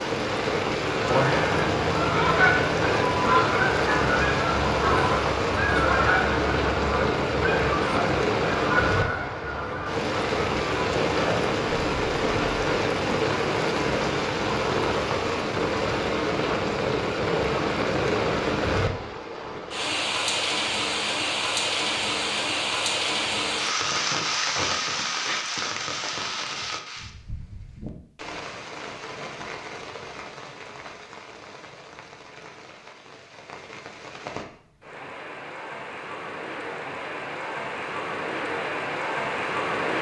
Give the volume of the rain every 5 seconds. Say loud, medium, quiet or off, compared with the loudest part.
loud, loud, loud, loud, loud, medium, quiet, medium.